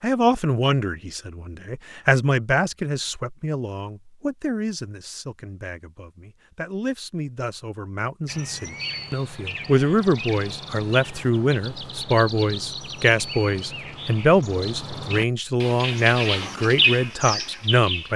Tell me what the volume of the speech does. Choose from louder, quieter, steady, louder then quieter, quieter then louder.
quieter then louder.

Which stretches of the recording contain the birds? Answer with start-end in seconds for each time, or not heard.
8.2-18.1.